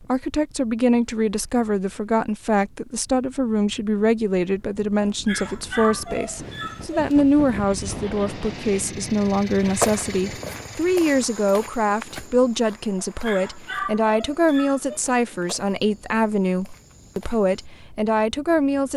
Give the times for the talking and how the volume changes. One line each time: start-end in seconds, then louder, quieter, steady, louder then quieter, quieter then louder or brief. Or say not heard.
0.1-18.9 steady.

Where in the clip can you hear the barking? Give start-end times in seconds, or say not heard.
5.2-7.0, 13.2-15.0.